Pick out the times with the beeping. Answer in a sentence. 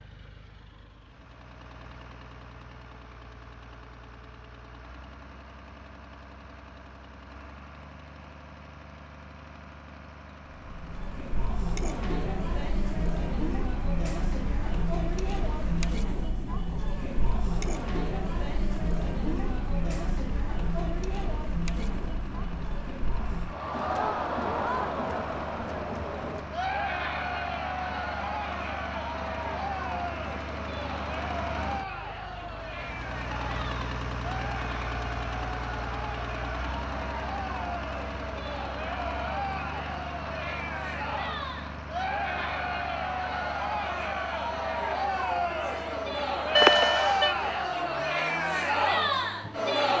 You can hear the beeping from 46.5 to 47.4 s.